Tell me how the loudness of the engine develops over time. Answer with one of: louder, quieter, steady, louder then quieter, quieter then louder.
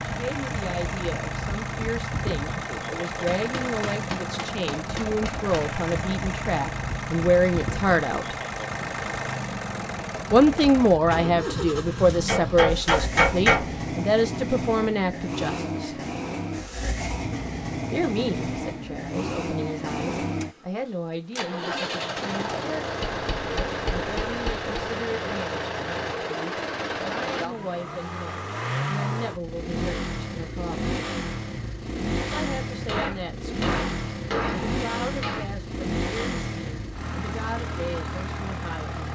steady.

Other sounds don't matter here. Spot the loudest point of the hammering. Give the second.
13 s.